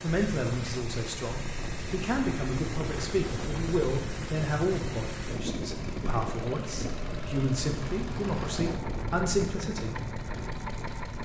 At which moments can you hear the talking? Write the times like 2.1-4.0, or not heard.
0.0-10.0.